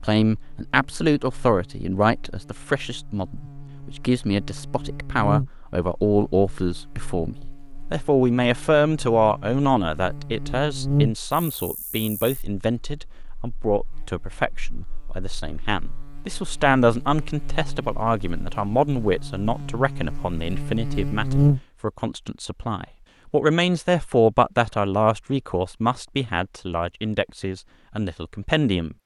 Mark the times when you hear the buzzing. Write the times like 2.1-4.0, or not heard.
0.2-21.6.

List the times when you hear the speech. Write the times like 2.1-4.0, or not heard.
0.0-28.9.